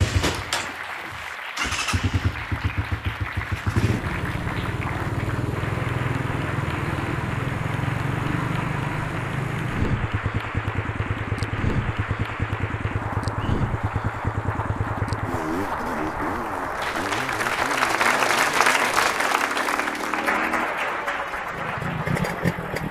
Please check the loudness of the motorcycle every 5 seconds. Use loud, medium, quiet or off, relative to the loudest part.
loud, loud, loud, medium, loud.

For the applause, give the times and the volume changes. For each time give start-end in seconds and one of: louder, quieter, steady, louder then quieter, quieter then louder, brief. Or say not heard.
0.2-22.8 louder.